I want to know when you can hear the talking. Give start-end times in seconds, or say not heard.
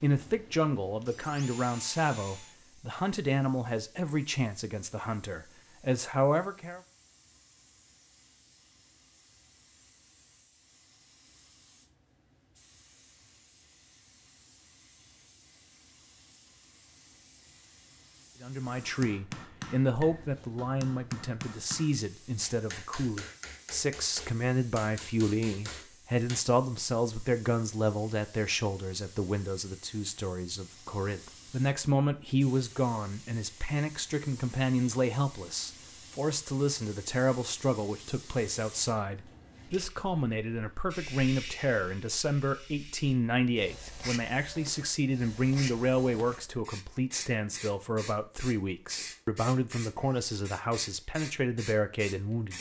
0.0-6.8, 18.4-52.5.